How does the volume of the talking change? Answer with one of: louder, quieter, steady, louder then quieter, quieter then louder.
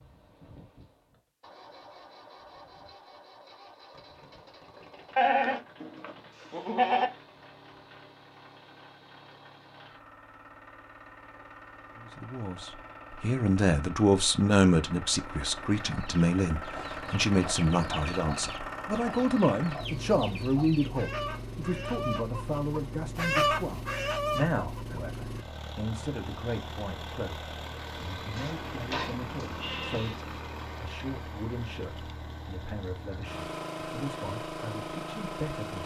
quieter.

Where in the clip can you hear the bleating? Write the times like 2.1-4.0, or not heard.
5.2-7.1, 28.4-30.2.